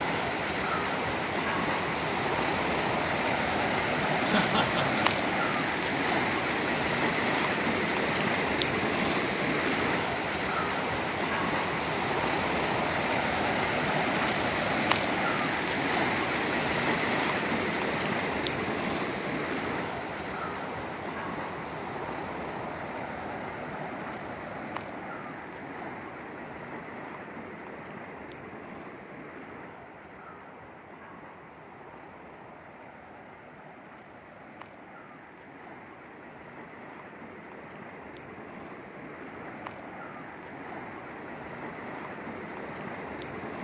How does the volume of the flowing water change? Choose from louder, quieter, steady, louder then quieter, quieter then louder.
quieter.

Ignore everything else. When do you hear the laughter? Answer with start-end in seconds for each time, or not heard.
4.2-5.2.